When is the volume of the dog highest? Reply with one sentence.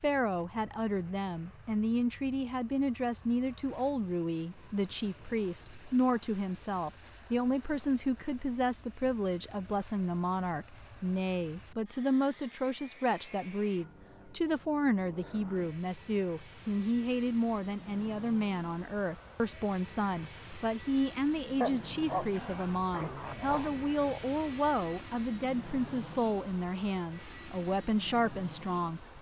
The volume of the dog peaks at 22 seconds.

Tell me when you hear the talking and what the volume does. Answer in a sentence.
You can hear the talking from 0.0 to 29.1 s, at a steady volume.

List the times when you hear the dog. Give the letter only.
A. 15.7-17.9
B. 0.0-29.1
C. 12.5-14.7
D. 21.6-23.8
D.